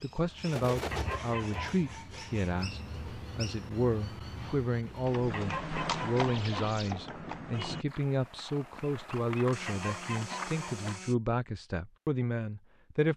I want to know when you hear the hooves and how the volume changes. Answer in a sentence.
The hooves can be heard from 5.0 to 11.0 s, getting quieter.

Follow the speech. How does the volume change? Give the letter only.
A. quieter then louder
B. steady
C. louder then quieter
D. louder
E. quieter
B.